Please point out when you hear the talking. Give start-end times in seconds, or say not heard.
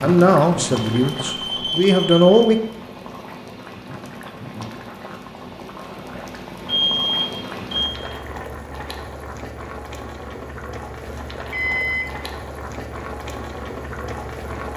0.0-2.6.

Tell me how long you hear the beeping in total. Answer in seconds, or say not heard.
4 s.